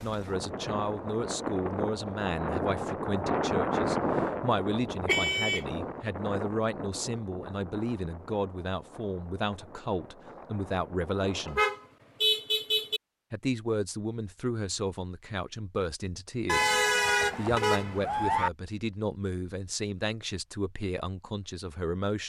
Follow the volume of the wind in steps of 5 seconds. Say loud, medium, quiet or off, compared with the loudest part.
loud, medium, quiet, off, off.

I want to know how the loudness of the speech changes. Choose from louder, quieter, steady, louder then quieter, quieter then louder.
steady.